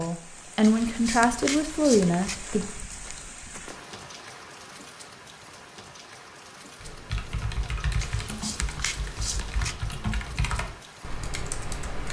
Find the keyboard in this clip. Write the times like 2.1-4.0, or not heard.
6.8-12.0.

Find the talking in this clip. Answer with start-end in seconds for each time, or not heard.
0.0-2.6.